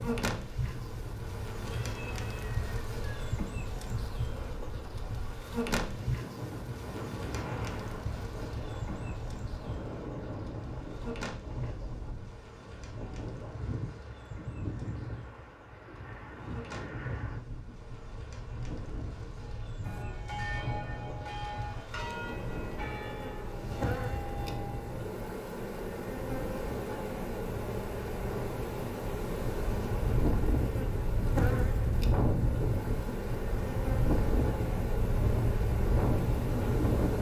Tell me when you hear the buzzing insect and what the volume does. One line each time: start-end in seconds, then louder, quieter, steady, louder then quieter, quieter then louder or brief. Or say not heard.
0.0-37.1 quieter then louder.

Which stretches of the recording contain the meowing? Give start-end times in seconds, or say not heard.
1.6-3.2.